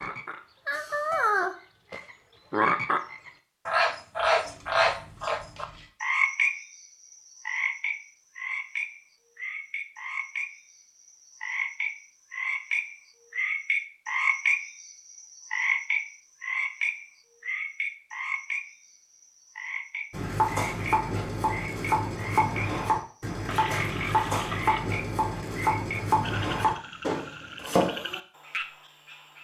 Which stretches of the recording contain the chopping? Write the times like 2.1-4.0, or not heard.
20.1-28.0.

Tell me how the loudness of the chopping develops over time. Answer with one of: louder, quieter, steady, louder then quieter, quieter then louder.
steady.